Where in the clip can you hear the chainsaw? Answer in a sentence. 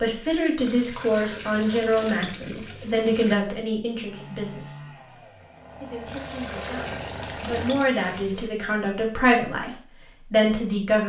The chainsaw can be heard from 3.9 to 7.9 s.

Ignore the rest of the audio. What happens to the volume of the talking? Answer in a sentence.
The volume of the talking goes down, then up.